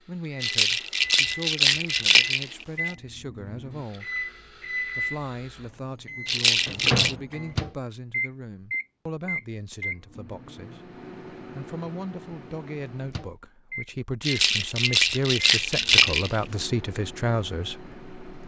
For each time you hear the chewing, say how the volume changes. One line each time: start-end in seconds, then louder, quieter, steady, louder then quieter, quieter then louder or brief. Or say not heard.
not heard.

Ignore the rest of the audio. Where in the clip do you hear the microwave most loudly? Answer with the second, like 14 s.
7 s.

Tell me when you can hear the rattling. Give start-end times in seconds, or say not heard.
0.4-2.9, 6.2-7.2, 14.2-16.4.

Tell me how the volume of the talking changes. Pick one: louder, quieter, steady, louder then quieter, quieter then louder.
louder.